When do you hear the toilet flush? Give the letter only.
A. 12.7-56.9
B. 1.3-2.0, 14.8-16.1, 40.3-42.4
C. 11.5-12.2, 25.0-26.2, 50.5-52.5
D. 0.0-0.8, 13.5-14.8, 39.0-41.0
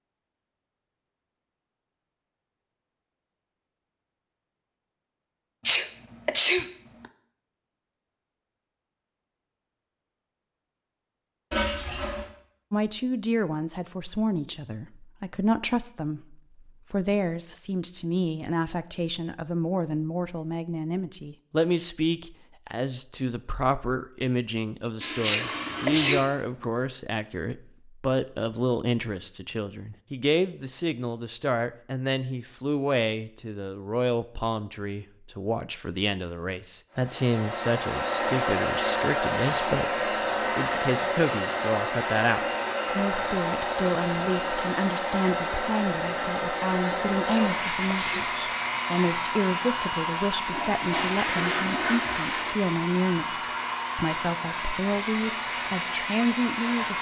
C.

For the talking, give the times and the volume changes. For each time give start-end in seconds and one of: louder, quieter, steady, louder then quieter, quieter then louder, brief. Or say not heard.
12.7-56.9 steady.